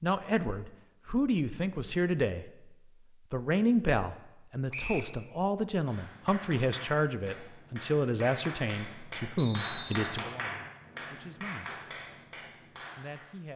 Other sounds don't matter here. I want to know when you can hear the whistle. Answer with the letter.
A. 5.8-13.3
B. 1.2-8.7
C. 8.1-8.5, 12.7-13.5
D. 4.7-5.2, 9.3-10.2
D.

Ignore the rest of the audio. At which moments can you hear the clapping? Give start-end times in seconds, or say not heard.
5.8-13.3.